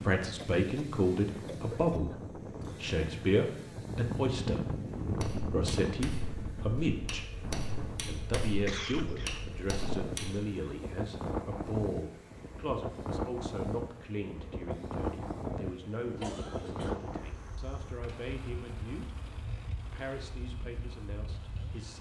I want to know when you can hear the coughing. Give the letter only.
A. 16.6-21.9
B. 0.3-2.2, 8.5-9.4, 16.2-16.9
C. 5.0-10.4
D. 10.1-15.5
B.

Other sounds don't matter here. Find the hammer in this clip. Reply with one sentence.
The hammer can be heard from 5.0 to 10.4 s.